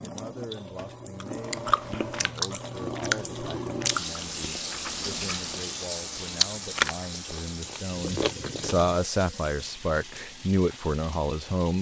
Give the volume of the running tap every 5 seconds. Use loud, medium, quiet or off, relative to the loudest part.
loud, loud, medium.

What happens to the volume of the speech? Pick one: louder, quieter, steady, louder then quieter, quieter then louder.
louder.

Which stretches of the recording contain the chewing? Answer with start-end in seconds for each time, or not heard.
1.2-8.9.